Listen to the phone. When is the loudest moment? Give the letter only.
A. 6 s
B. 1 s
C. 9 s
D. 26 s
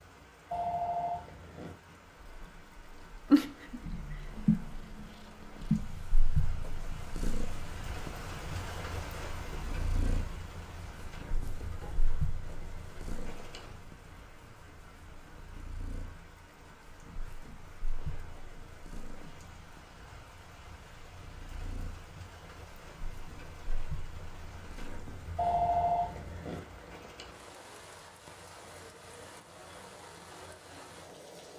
D.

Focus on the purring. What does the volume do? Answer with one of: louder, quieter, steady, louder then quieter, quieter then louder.
quieter.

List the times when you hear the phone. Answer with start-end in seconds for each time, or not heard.
0.5-1.8, 25.4-26.6.